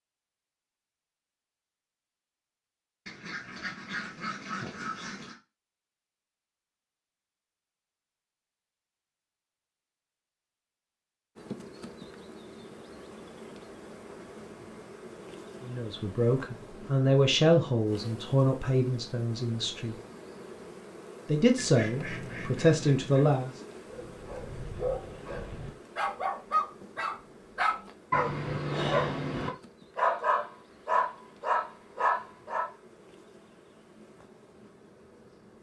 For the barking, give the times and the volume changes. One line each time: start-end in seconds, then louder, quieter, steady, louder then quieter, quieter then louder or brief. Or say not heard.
23.9-32.7 louder.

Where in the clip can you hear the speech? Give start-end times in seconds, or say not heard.
15.6-19.9, 21.2-23.5.